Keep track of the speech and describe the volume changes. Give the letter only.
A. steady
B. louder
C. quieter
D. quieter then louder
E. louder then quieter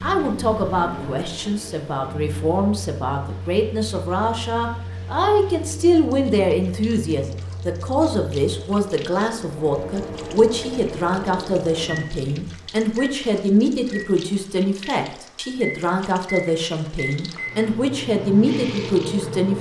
A.